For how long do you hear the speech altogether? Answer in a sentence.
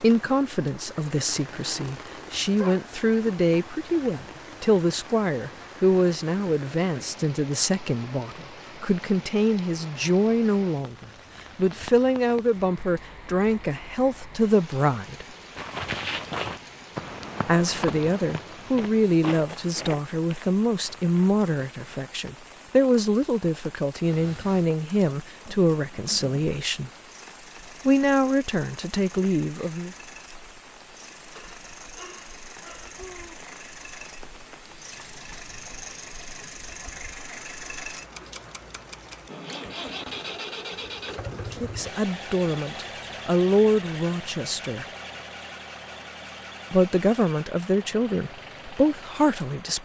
You can hear the speech for 33 seconds altogether.